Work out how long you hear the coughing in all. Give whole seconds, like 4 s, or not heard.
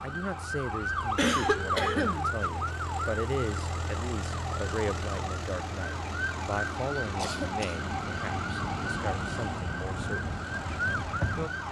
2 s.